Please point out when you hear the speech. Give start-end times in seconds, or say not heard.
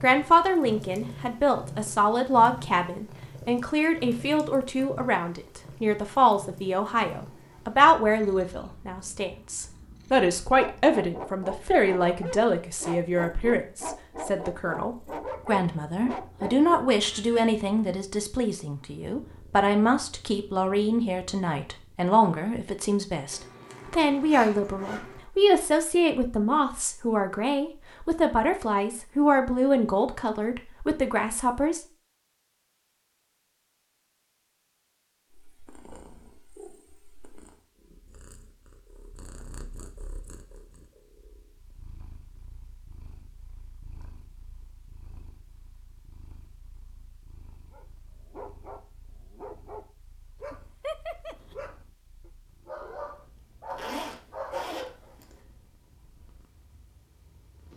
0.0-31.9.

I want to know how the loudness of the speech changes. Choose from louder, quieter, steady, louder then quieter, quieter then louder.
steady.